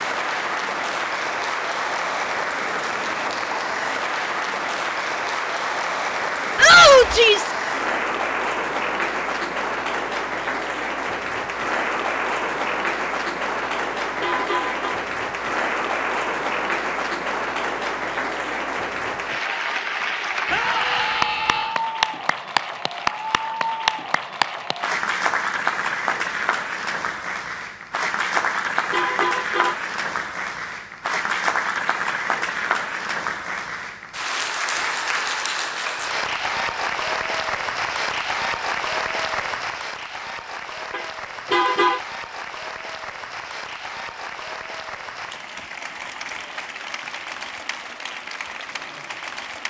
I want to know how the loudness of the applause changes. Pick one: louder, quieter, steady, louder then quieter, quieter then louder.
quieter.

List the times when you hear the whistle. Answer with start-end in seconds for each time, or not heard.
not heard.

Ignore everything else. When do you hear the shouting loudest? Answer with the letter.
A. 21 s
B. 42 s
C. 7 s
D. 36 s
C.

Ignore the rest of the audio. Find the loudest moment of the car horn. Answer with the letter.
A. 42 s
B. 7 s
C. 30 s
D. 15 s
A.